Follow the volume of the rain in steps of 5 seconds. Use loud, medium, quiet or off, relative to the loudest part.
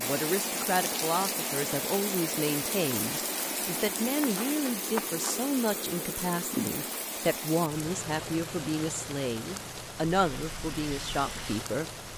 loud, loud, medium.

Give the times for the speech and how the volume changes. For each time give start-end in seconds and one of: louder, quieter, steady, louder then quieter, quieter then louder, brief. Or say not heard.
0.0-11.8 steady.